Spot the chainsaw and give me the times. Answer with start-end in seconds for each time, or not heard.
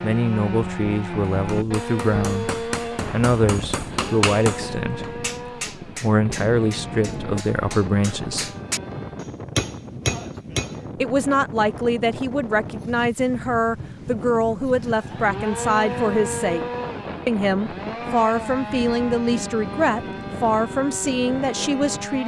0.0-9.3, 14.8-22.2.